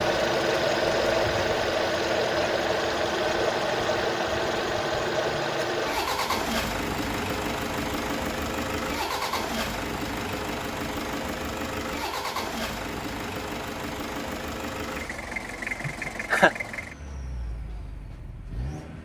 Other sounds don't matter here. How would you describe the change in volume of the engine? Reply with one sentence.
The loudness of the engine goes down.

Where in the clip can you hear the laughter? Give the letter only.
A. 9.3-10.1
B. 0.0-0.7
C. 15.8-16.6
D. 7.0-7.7
C.